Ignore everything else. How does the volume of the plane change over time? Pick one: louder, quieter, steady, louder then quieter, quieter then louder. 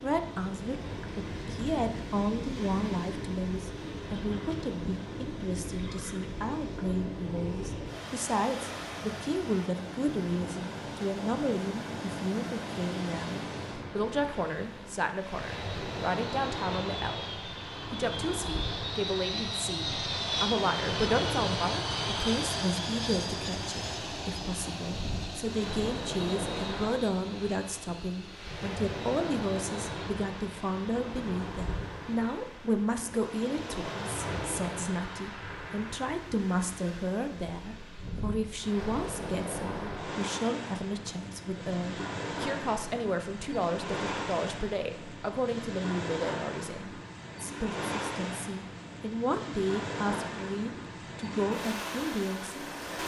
louder then quieter.